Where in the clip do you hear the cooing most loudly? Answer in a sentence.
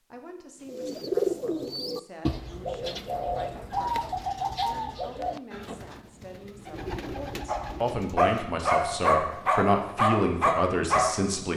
The volume of the cooing peaks at 1 second.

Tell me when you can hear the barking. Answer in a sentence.
The barking can be heard from 7.5 to 11.3 s.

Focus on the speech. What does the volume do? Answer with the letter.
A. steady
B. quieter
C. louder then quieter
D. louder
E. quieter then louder
D.